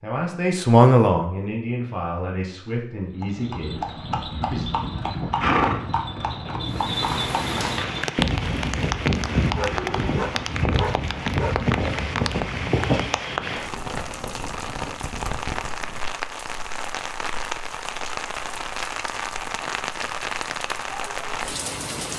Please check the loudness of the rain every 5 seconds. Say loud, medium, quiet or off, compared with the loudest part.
off, loud, loud, loud, loud.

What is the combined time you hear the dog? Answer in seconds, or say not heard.
2 s.